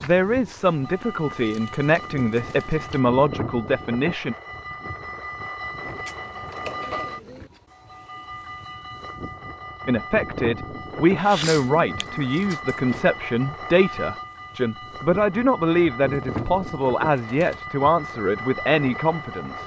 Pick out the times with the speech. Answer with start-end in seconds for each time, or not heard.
0.0-4.3, 9.8-19.6.